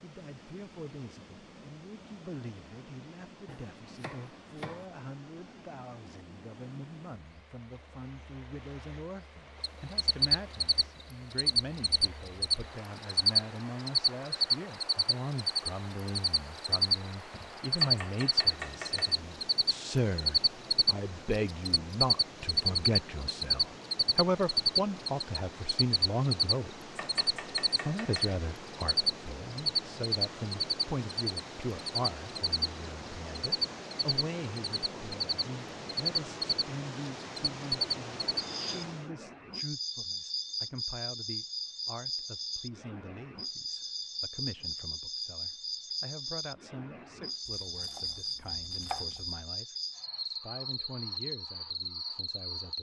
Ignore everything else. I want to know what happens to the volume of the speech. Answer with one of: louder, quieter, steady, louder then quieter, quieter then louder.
louder then quieter.